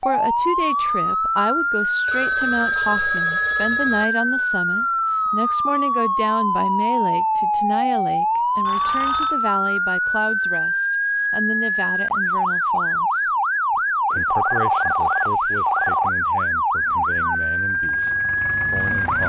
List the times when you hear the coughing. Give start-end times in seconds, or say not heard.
not heard.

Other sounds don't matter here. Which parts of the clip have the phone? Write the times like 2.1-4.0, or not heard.
2.0-4.0, 8.7-9.3, 14.1-16.1.